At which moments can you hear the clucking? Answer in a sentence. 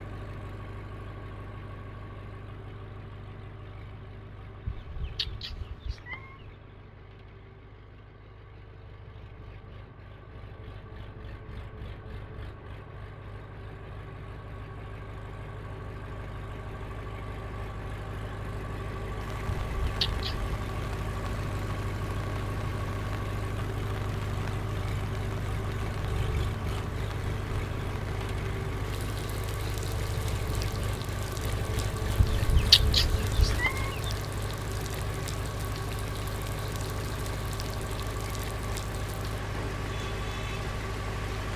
The clucking can't be heard in this clip.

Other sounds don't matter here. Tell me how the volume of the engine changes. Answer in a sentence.
The loudness of the engine goes up.